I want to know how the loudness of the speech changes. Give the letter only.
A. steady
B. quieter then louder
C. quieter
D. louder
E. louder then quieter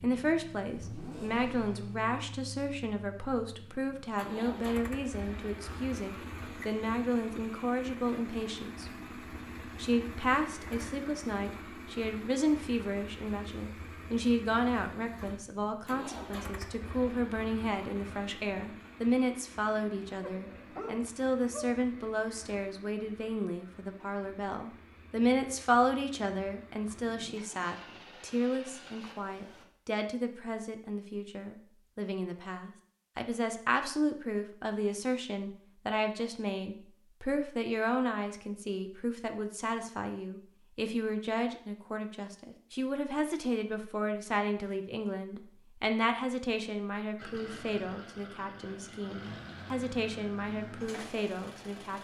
A.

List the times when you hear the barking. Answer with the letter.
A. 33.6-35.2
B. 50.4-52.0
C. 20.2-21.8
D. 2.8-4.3
C.